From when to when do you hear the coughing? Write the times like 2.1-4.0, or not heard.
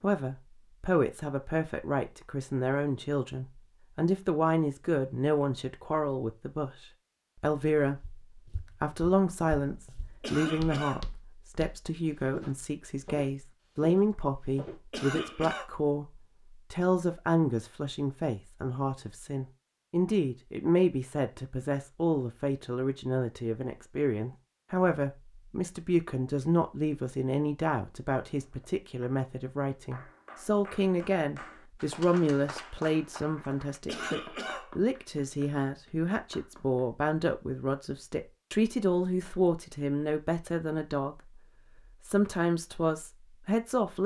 10.2-11.1, 14.9-15.7, 33.9-34.7.